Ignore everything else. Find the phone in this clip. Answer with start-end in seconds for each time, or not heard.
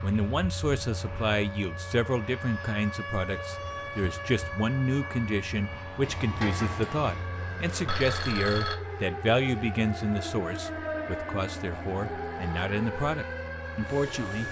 7.8-8.8.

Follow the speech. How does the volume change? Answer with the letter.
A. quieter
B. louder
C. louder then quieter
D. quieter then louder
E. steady
E.